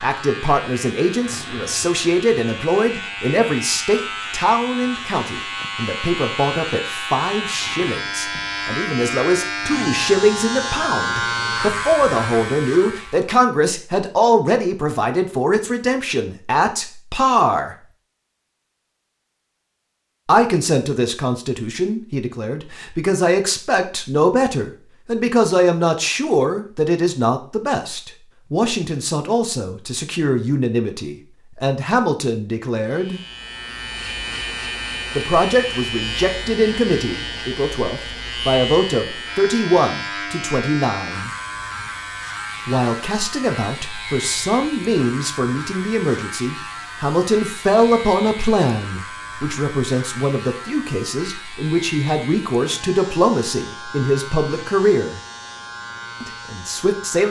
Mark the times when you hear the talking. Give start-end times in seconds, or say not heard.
0.0-17.8, 20.2-33.2, 35.1-41.3, 42.6-55.2, 56.2-57.2.